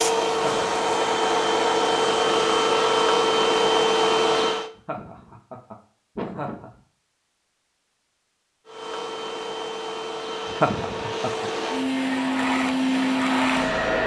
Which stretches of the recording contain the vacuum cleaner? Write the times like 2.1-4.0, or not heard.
0.0-4.7, 8.7-14.0.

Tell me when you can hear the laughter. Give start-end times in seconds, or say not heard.
0.3-1.1, 4.8-6.7, 10.5-11.5.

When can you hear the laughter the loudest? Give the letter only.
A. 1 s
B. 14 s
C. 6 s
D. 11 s
D.